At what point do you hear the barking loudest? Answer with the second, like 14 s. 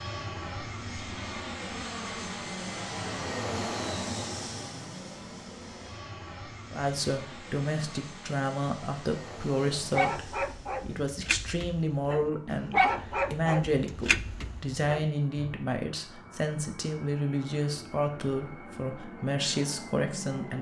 13 s.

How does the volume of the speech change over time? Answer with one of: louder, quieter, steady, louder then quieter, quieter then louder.
steady.